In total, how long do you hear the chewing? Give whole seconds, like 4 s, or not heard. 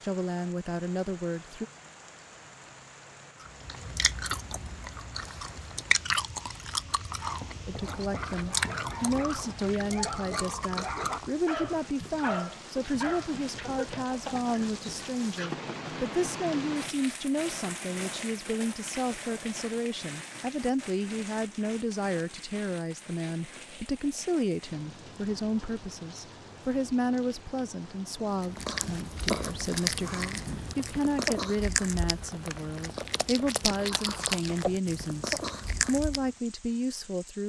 16 s.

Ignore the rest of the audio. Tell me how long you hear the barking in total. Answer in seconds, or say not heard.
7 s.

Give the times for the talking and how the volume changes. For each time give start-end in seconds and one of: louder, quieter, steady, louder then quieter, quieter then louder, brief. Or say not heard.
0.0-1.6 brief
7.7-37.4 steady.